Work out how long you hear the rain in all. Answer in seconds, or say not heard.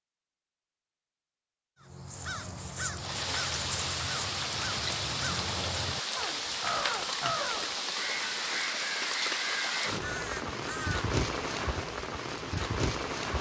10 s.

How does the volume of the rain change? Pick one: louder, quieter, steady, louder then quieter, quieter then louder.
steady.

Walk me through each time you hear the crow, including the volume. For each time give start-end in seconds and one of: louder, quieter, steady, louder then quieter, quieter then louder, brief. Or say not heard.
1.8-11.1 steady.